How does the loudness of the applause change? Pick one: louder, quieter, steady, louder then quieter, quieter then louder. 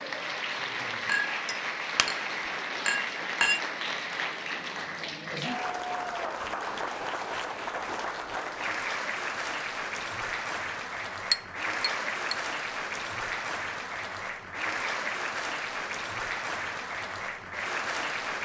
steady.